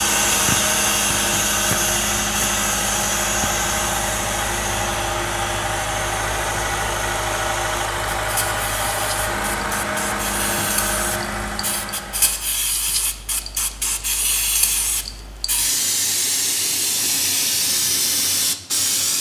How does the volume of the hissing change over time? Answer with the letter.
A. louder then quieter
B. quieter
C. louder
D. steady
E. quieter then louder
E.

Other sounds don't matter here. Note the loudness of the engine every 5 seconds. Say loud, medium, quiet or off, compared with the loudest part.
loud, loud, loud, off.